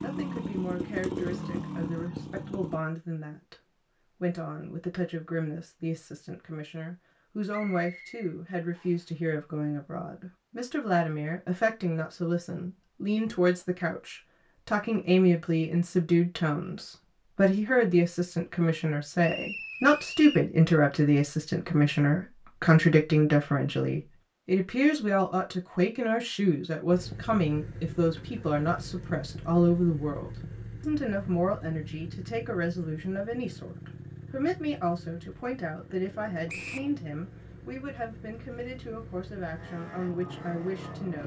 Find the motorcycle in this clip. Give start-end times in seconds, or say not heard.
0.0-2.8, 26.9-41.2.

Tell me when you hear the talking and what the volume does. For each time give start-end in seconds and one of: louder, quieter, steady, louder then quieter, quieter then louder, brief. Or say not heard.
0.0-41.2 louder then quieter.